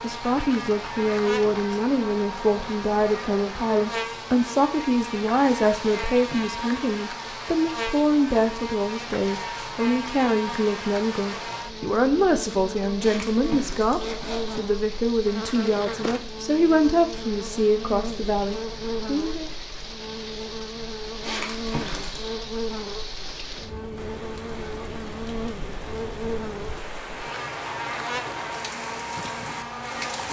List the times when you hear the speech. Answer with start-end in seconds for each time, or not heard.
0.0-19.5.